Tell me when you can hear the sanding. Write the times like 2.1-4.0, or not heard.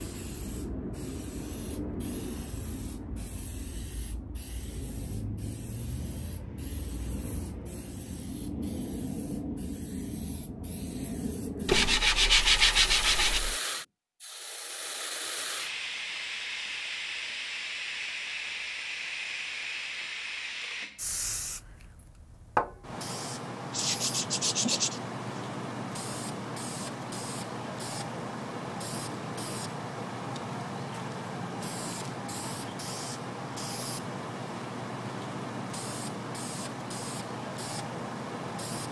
11.7-13.6, 23.7-25.4.